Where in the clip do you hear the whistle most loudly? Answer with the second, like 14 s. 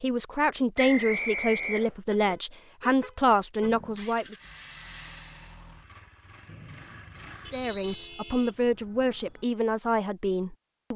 1 s.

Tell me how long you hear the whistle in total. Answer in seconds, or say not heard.
3 s.